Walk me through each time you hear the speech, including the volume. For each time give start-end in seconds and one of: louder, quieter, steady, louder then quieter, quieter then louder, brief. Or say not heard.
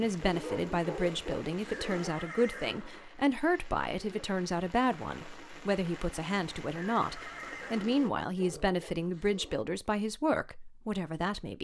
0.0-11.5 steady.